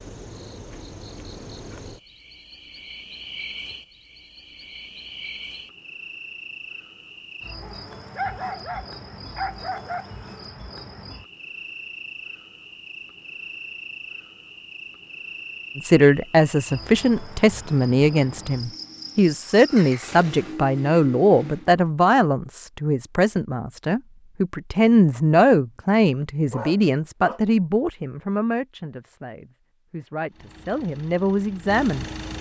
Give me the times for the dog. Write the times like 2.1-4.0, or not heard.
7.6-10.2, 26.5-27.4.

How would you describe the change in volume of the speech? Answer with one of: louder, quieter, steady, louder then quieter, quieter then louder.
quieter.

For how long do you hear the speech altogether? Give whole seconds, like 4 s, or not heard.
16 s.